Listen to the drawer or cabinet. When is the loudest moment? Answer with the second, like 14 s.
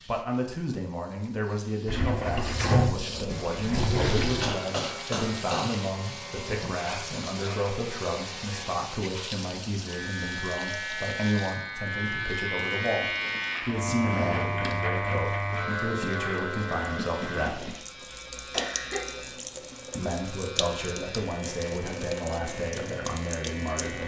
3 s.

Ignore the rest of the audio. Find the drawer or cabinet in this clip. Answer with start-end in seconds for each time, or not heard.
1.9-4.6, 13.9-14.8.